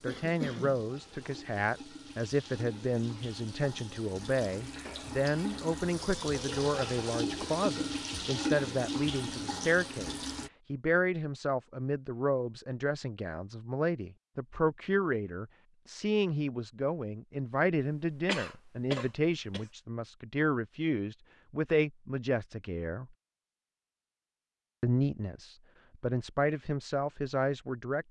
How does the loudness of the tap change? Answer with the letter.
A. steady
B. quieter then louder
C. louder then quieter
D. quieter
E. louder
E.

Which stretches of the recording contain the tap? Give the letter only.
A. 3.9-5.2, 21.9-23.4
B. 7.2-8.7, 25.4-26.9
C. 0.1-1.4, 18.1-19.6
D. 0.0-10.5
D.